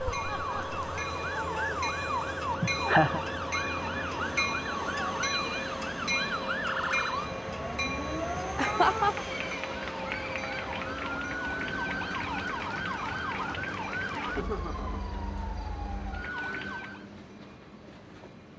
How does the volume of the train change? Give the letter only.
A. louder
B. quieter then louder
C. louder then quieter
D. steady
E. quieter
E.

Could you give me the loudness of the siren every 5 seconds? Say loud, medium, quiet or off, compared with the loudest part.
loud, loud, loud, medium.